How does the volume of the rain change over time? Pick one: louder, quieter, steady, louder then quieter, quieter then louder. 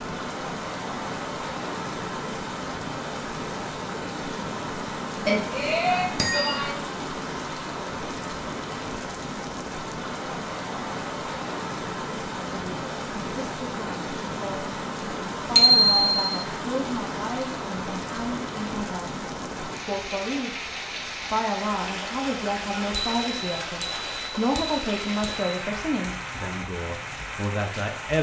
steady.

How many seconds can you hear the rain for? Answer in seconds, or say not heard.
28 s.